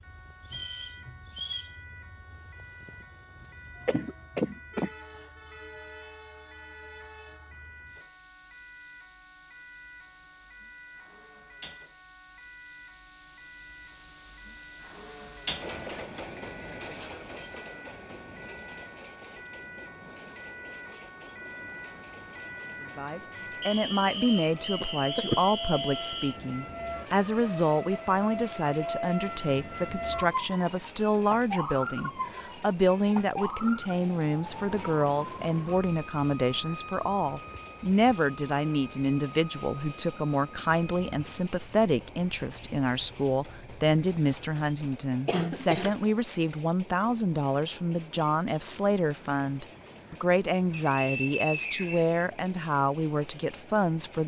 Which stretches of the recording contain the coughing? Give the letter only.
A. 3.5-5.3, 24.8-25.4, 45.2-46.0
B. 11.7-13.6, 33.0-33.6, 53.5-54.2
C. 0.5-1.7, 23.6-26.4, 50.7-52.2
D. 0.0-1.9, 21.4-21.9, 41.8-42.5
A.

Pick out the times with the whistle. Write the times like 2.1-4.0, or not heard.
0.5-1.7, 23.6-26.4, 50.7-52.2.